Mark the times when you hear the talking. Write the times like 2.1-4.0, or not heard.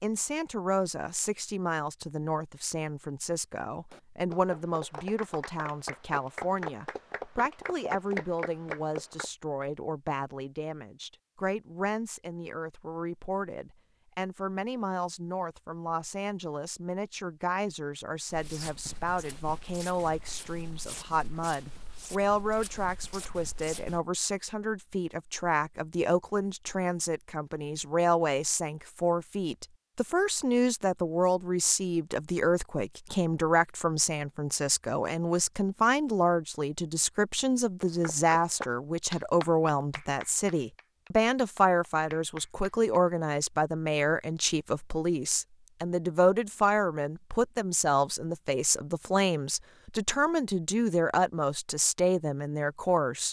0.0-53.2.